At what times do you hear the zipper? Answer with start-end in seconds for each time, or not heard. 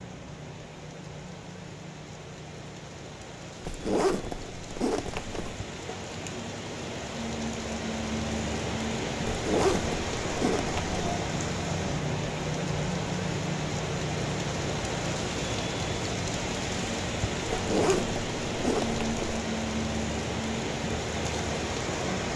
3.6-5.5, 9.2-11.0, 17.5-19.4.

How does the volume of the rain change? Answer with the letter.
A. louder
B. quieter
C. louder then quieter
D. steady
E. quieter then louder
A.